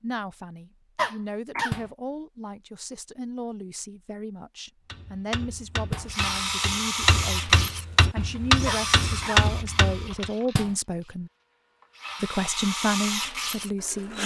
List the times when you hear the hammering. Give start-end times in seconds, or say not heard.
4.8-10.3.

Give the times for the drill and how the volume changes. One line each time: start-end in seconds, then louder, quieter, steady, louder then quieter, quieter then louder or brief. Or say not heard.
6.0-14.2 quieter then louder.